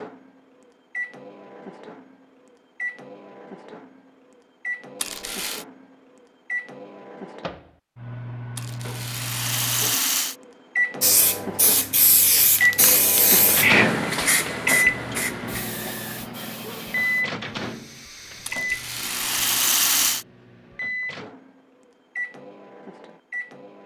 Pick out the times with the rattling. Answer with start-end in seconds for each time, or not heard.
5.0-5.7, 8.6-10.3, 18.4-20.2.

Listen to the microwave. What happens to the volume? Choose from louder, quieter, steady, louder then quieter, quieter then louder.
louder then quieter.